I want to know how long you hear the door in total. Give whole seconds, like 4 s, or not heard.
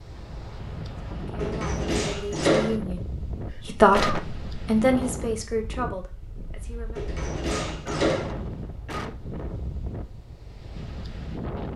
3 s.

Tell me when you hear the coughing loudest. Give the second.
4 s.